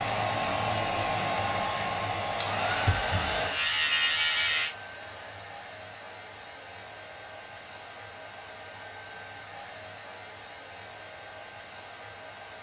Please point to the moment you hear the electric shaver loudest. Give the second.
4 s.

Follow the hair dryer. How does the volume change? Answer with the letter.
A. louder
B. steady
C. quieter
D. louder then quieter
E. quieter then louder
C.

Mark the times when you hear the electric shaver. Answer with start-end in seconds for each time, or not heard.
0.0-4.8.